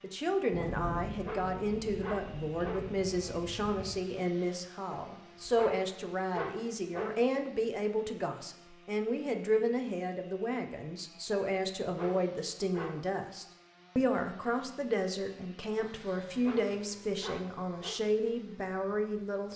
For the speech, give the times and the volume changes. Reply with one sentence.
The speech can be heard from 0.0 to 19.5 s, at a steady volume.